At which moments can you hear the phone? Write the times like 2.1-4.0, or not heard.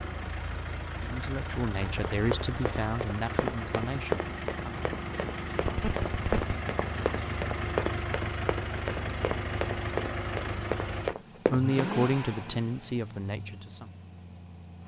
5.7-6.5.